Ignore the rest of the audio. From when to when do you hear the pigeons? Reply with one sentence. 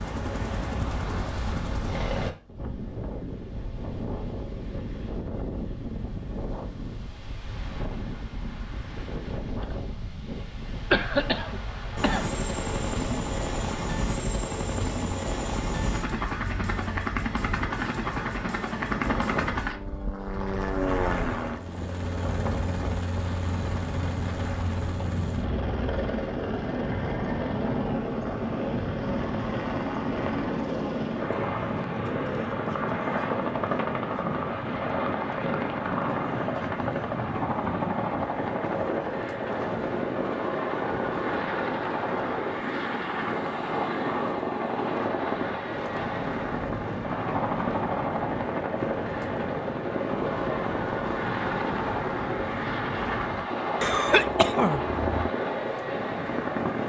You can't hear the pigeons here.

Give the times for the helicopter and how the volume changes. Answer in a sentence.
The helicopter can be heard briefly from 0.0 to 2.4 s; and from 11.9 to 56.8 s, at a steady volume.